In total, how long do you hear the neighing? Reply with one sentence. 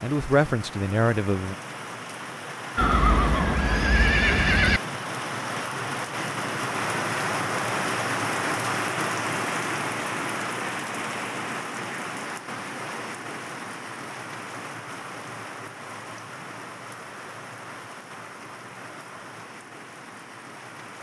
The neighing can be heard for 2 seconds in total.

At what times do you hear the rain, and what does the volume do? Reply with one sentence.
You can hear the rain from 0.0 to 20.9 s, getting louder then quieter.